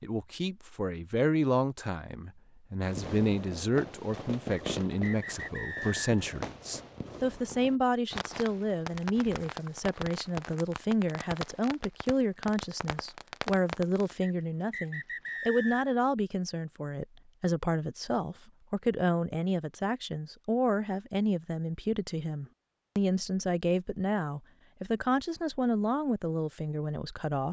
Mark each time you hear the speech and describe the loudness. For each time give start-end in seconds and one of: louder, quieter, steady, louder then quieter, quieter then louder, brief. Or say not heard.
0.0-27.4 steady.